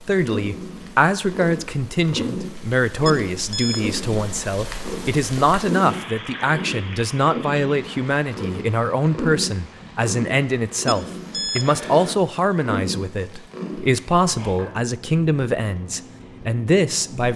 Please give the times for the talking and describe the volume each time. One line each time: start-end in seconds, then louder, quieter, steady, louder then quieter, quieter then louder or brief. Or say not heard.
0.0-17.3 steady.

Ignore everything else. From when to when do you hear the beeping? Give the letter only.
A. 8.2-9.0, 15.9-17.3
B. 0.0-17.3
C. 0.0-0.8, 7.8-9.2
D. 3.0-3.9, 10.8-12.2
D.